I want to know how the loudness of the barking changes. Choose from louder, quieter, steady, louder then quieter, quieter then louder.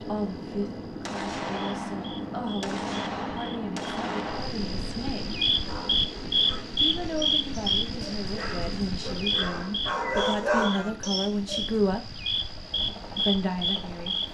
louder.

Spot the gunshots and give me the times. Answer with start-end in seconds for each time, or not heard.
1.1-4.5.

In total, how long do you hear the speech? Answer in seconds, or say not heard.
12 s.